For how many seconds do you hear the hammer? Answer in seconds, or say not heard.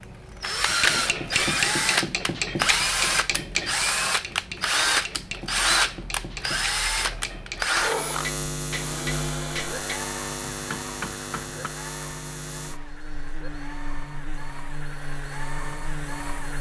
11 s.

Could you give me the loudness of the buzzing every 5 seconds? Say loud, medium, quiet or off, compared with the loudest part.
off, loud, medium, medium.